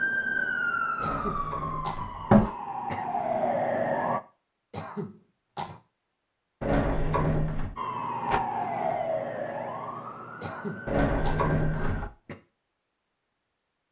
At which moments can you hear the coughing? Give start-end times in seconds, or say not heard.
1.0-3.0, 4.7-5.8, 10.4-12.3.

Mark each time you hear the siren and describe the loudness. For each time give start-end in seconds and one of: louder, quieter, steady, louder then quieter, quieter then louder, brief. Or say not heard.
0.0-4.2 quieter then louder
7.8-12.1 quieter.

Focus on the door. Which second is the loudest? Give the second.
2 s.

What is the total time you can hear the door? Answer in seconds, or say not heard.
4 s.